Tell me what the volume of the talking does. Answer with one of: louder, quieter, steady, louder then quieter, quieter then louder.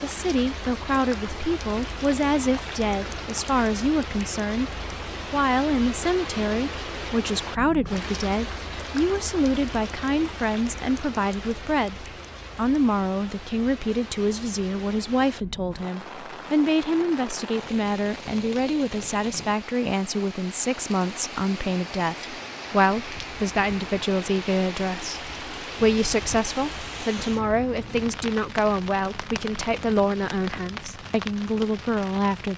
steady.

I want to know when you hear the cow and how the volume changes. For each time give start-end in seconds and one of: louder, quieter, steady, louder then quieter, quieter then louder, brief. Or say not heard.
not heard.